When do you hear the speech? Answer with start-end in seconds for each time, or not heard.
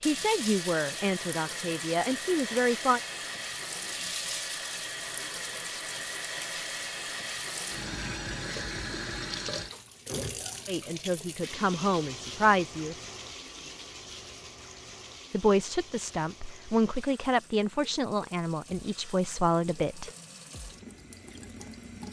0.0-3.0, 10.7-12.9, 15.3-20.1.